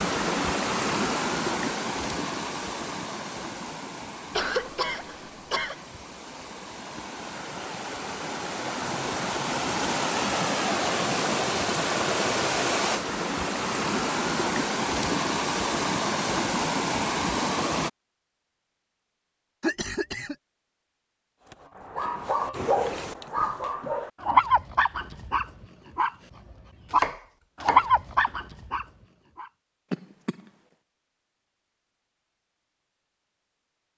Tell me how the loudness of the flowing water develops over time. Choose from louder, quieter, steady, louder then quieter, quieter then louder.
quieter then louder.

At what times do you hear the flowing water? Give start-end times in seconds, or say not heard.
0.0-17.9.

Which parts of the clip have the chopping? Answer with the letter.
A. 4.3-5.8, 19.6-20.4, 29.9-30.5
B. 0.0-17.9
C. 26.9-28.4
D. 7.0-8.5
C.